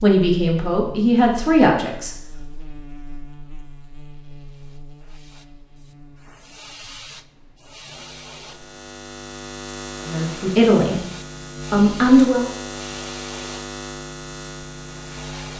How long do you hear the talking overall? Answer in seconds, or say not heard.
4 s.